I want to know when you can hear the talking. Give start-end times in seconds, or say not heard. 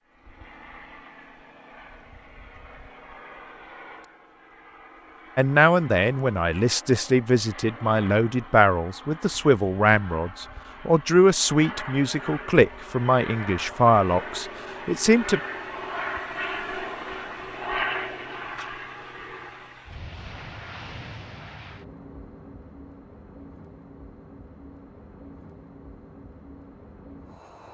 5.3-15.4.